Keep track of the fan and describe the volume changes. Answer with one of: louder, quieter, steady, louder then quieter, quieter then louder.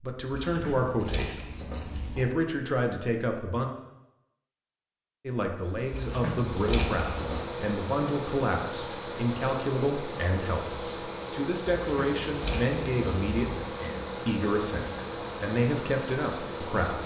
steady.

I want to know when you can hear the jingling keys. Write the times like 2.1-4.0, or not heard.
0.3-2.2, 5.9-7.5, 11.7-13.6.